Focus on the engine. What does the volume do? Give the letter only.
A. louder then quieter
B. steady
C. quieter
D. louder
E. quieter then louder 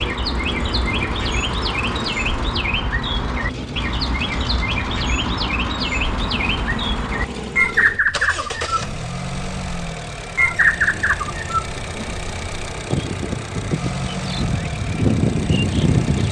B.